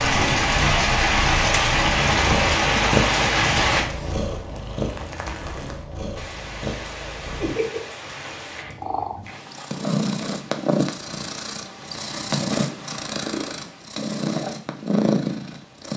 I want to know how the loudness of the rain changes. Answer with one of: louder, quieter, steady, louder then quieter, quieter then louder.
quieter.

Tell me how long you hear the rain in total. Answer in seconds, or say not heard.
9 s.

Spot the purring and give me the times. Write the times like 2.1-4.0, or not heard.
0.0-15.9.